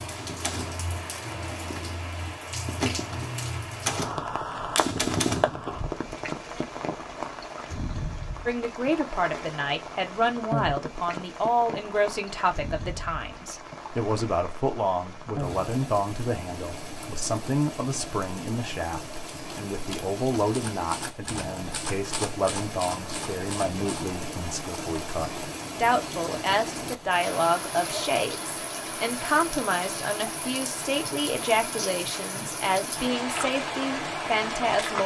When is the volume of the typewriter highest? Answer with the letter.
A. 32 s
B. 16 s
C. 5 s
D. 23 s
C.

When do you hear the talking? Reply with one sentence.
The talking can be heard from 8.4 to 35.0 s.